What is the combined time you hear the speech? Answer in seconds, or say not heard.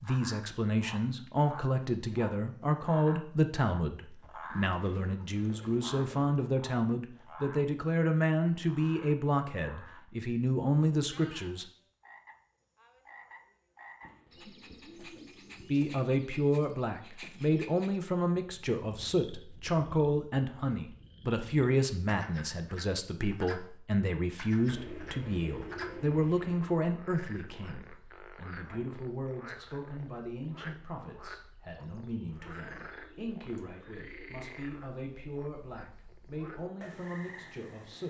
34 s.